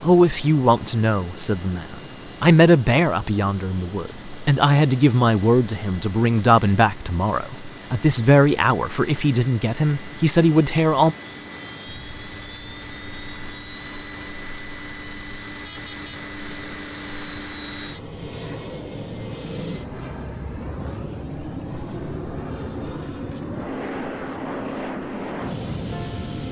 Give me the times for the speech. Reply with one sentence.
The speech can be heard from 0.0 to 11.2 s.